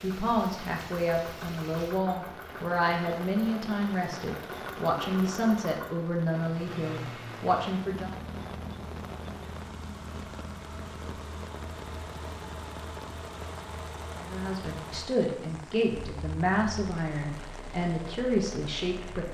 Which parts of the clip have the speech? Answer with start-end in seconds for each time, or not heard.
0.0-8.2, 14.2-19.2.